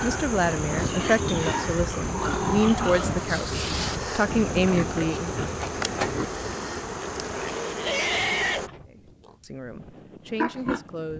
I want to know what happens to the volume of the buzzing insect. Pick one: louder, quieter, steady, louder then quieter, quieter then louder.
steady.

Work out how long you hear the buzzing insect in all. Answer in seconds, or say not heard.
9 s.